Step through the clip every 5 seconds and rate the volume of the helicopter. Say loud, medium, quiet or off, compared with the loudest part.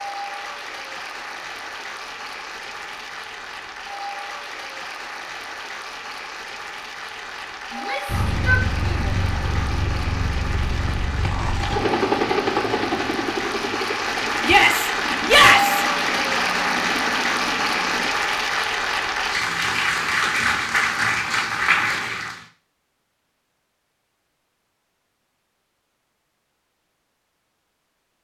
off, loud, loud, medium, off, off.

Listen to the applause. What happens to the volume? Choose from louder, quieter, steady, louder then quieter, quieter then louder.
louder.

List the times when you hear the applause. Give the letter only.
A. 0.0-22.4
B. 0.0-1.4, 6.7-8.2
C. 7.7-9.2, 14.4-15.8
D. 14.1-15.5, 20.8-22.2
A.